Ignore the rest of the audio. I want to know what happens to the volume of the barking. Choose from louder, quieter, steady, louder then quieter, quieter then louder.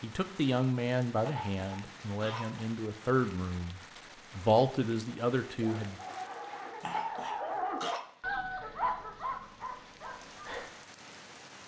louder then quieter.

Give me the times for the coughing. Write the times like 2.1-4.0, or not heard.
1.2-2.6, 6.8-8.1.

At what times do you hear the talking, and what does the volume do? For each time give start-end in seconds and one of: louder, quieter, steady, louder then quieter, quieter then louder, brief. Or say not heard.
0.0-6.0 quieter then louder.